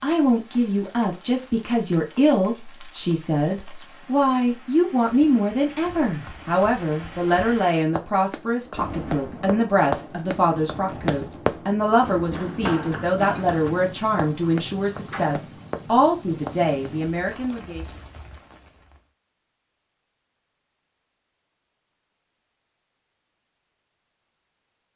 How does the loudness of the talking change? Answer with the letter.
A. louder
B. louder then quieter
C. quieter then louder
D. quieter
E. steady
E.